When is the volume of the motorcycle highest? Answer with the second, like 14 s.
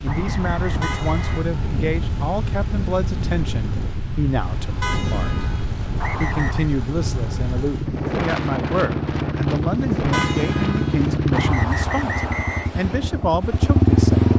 14 s.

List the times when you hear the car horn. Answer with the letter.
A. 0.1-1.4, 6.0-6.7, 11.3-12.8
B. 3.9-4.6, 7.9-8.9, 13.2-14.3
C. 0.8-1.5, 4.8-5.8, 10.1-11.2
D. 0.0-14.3
C.